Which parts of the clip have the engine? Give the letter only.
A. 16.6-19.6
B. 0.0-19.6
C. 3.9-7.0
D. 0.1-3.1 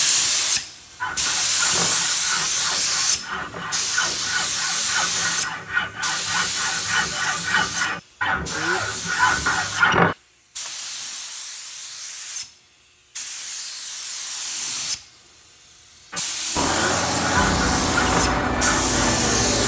A.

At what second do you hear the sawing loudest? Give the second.
10 s.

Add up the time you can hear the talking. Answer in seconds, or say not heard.
not heard.